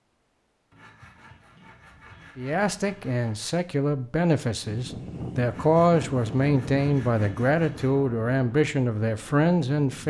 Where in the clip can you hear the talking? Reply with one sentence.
You can hear the talking from 2.4 to 10.0 s.